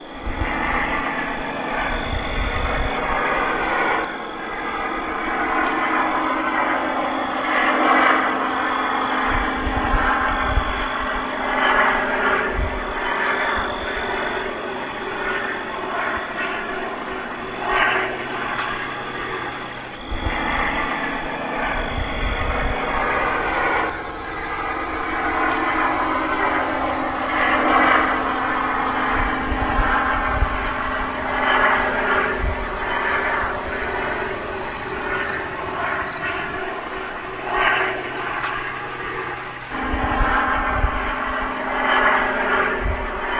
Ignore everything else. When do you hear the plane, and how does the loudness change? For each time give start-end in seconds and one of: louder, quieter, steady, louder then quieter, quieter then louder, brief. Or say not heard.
0.1-43.3 steady.